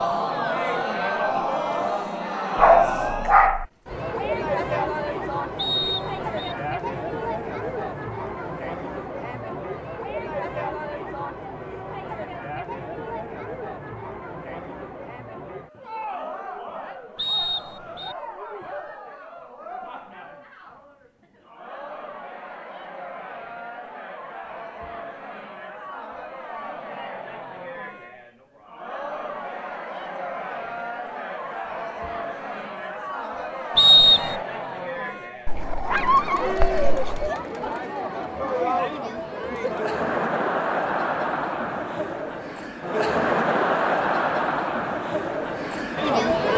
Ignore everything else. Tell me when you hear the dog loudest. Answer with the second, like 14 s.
3 s.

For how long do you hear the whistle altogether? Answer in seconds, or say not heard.
3 s.